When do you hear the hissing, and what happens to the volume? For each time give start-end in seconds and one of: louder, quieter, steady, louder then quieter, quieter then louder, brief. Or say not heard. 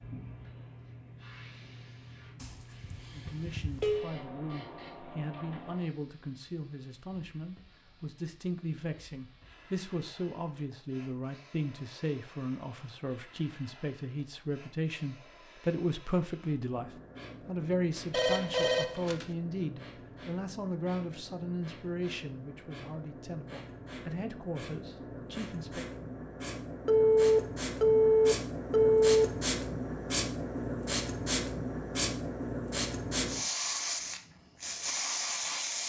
0.0-35.8 quieter then louder.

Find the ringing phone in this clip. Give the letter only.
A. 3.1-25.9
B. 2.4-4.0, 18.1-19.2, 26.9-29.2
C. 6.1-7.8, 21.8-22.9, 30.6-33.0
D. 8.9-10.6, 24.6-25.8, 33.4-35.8
B.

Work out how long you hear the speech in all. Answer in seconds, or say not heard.
23 s.